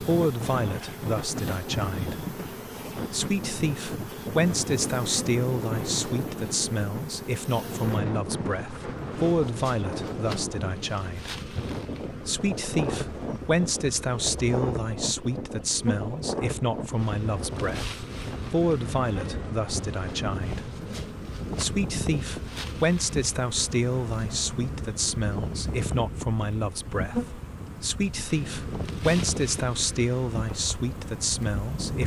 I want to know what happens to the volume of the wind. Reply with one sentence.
The volume of the wind stays about the same.